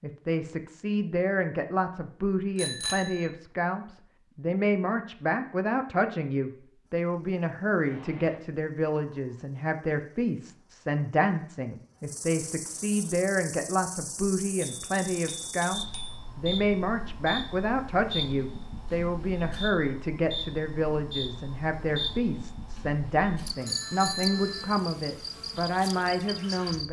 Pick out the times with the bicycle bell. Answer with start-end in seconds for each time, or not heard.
2.5-3.2, 14.6-16.2, 23.6-24.7.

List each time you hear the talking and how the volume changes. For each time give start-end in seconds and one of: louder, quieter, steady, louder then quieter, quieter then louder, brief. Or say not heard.
0.0-26.8 steady.